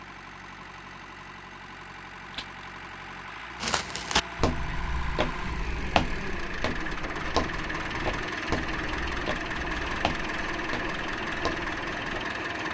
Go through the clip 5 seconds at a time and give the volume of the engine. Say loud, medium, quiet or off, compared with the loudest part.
medium, loud, loud.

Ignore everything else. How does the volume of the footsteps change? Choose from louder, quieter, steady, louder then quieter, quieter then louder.
quieter.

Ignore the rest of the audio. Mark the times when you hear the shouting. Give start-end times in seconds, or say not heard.
not heard.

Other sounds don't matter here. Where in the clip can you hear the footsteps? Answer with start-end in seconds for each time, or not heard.
3.6-12.2.